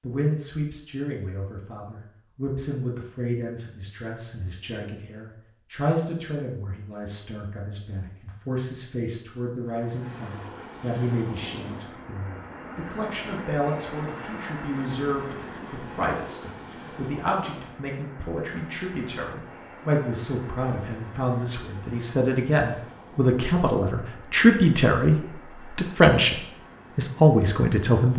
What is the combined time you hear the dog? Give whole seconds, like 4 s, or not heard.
not heard.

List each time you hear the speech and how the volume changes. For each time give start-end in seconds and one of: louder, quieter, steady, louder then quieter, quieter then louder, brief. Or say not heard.
0.0-28.1 louder.